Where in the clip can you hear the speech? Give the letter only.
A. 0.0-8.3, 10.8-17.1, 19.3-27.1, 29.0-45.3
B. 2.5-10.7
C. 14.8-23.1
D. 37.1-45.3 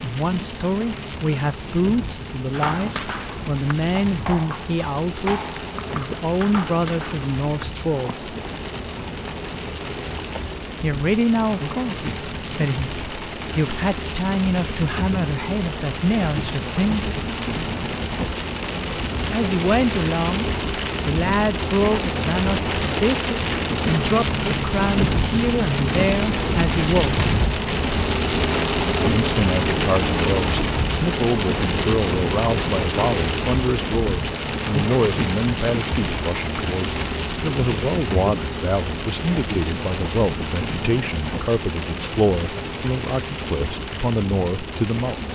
A.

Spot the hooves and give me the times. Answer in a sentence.
You can hear the hooves from 2.5 to 10.7 s.